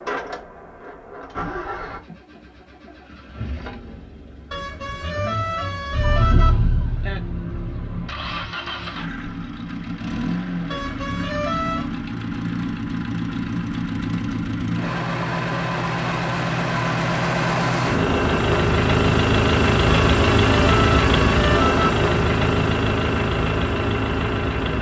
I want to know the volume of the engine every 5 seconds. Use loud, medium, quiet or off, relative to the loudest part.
quiet, quiet, medium, loud, loud.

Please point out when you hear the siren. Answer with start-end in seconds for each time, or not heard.
5.9-8.3.